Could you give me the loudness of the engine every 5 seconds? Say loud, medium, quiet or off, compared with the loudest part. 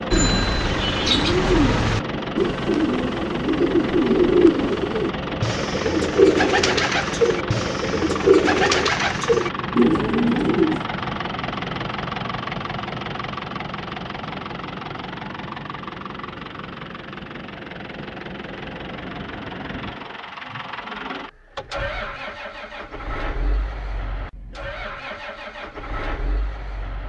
loud, loud, loud, medium, medium, medium.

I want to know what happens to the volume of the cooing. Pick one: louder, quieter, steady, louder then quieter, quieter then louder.
steady.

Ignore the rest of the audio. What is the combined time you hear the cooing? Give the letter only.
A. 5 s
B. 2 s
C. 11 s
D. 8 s
C.